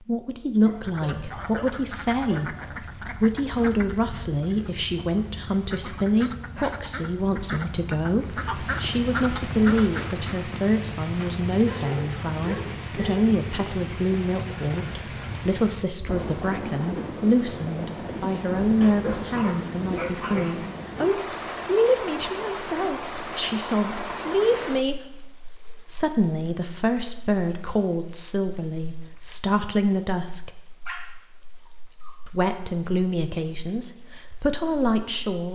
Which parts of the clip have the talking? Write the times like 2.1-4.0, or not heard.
0.0-2.5, 3.2-25.2, 25.9-30.5, 32.2-35.4.